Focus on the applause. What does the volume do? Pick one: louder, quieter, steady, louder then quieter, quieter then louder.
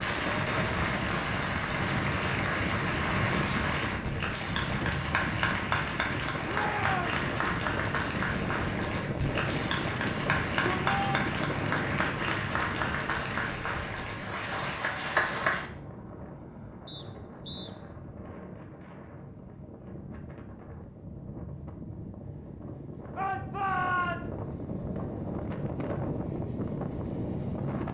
steady.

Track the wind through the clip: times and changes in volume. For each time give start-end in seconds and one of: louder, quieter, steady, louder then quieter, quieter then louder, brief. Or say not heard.
0.0-27.8 quieter then louder.